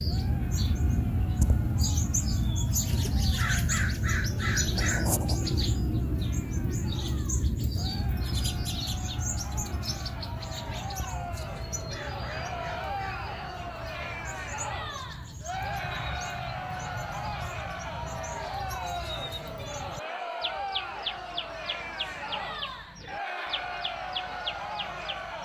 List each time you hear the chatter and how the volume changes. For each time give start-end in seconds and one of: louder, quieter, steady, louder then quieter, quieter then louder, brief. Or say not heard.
0.0-25.4 louder.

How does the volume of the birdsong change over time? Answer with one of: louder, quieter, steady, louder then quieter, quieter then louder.
quieter.